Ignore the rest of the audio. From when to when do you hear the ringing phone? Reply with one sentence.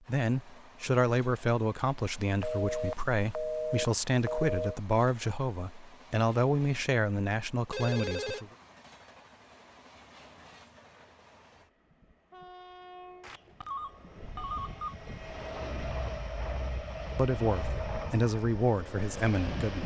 You can hear the ringing phone from 2.4 to 4.8 s, from 7.7 to 8.4 s and from 13.2 to 14.9 s.